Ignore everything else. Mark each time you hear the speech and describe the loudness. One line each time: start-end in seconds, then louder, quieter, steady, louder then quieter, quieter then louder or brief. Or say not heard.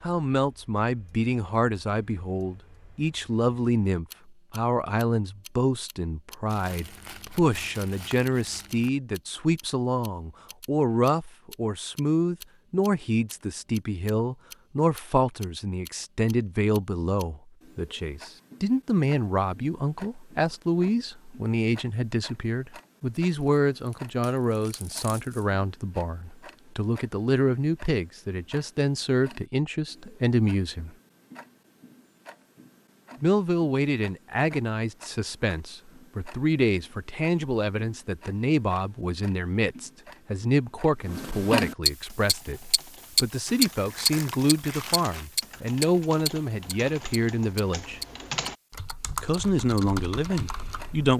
0.0-30.9 steady
33.2-48.0 steady
49.2-51.1 brief.